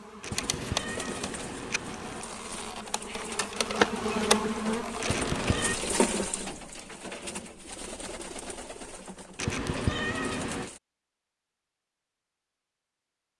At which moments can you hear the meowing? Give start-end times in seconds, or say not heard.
0.2-2.2, 5.0-5.8, 9.3-10.7.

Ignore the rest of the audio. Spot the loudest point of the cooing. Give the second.
6 s.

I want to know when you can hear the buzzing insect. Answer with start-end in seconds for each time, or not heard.
0.0-6.0.